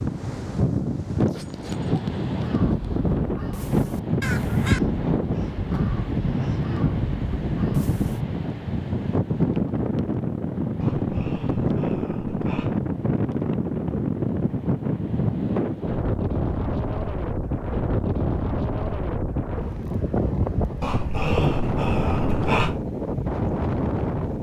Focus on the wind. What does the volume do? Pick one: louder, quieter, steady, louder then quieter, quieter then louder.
steady.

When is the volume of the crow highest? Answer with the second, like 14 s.
5 s.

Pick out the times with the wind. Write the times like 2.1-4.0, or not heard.
0.0-24.3.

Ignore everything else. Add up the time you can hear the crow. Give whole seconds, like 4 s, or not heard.
6 s.